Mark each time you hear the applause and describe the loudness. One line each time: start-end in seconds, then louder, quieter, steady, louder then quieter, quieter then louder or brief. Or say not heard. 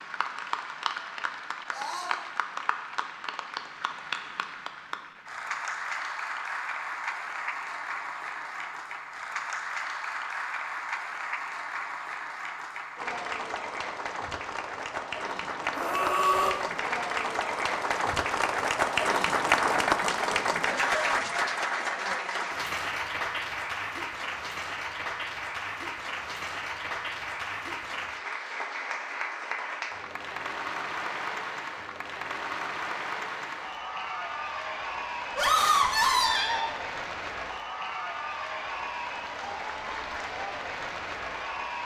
0.0-41.8 louder then quieter.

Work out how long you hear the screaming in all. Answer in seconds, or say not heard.
3 s.